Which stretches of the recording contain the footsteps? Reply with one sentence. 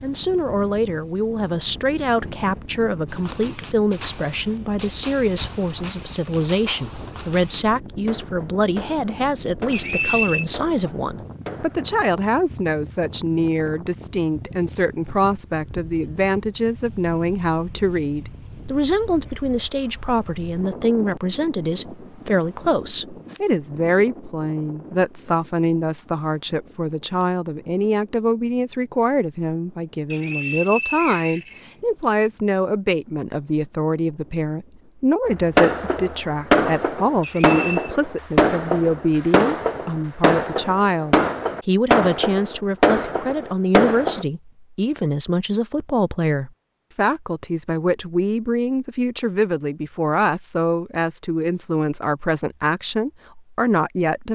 You can't hear the footsteps here.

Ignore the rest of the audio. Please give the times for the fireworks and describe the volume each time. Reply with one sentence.
You can hear the fireworks from 3.0 to 11.8 s, at a steady volume; and from 35.2 to 44.2 s, at a steady volume.